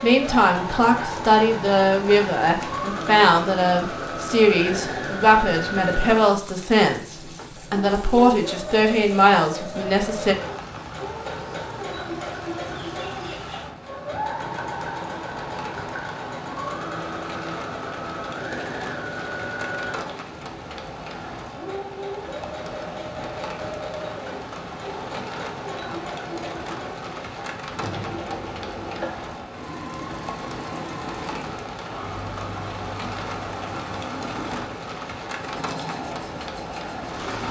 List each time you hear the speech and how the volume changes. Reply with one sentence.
You can hear the speech from 0.0 to 10.3 s, at a steady volume.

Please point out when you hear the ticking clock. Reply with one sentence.
You can't hear the ticking clock here.